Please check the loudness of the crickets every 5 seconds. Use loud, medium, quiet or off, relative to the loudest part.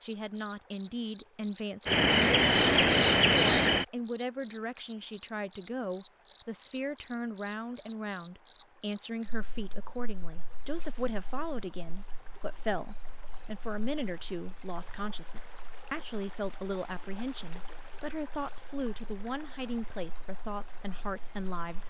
loud, loud, quiet, quiet, quiet.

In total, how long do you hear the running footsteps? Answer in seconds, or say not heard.
not heard.